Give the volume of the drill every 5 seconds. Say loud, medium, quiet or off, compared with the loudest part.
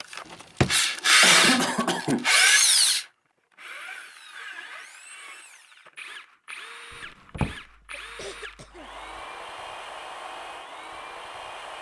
loud, quiet, quiet.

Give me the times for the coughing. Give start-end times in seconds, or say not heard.
1.2-2.2, 7.6-9.0.